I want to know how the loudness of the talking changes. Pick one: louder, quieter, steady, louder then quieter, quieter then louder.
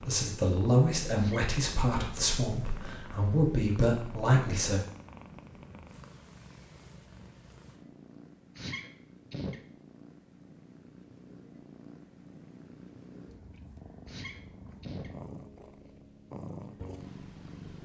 quieter then louder.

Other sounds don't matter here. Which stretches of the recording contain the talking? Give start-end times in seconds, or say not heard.
0.0-4.8.